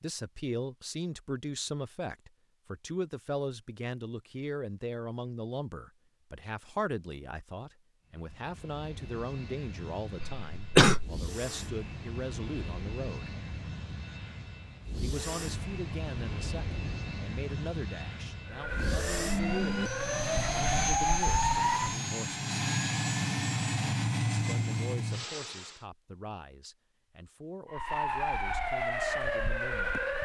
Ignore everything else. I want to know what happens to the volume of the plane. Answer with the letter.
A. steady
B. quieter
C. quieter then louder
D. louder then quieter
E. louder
E.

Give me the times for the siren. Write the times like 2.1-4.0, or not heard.
18.4-21.9, 27.6-30.1.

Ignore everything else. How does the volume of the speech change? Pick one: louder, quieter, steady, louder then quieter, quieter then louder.
quieter.